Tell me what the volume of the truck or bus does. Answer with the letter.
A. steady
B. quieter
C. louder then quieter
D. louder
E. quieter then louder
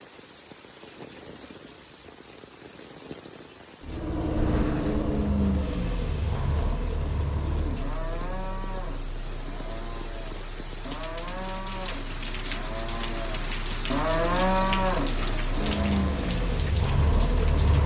E.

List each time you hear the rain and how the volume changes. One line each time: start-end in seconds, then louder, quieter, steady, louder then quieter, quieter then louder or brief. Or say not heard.
0.0-17.8 louder.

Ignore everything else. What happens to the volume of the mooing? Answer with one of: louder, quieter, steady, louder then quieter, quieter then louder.
louder.